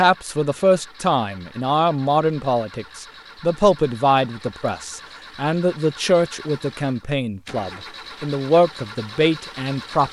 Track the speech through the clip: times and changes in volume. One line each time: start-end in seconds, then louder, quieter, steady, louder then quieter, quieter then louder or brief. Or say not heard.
0.0-10.0 steady.